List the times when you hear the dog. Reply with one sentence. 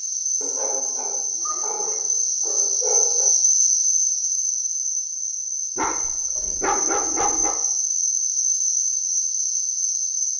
The dog can be heard from 0.4 to 3.3 s and from 5.8 to 7.5 s.